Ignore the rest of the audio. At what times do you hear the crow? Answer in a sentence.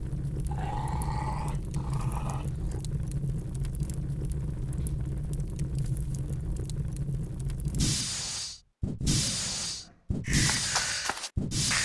You can hear the crow from 10.2 to 11.8 s.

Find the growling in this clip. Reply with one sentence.
The growling can be heard from 0.5 to 2.8 s and from 9.2 to 10.2 s.